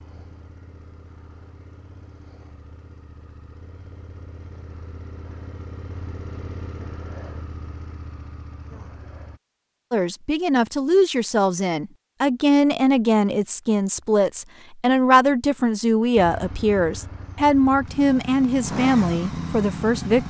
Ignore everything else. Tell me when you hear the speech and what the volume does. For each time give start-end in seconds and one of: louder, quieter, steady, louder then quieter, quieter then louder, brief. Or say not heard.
9.9-20.2 steady.